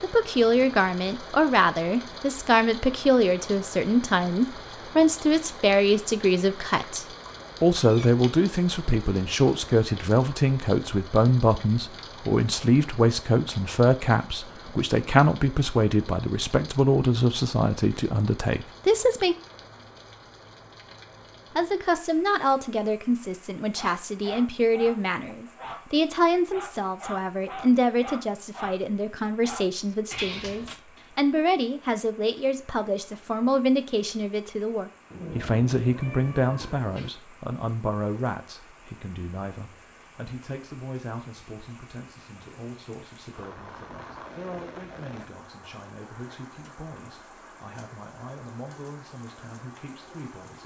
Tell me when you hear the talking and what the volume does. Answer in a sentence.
The talking can be heard from 0.0 to 19.4 s, at a steady volume; and from 21.6 to 50.6 s, getting quieter.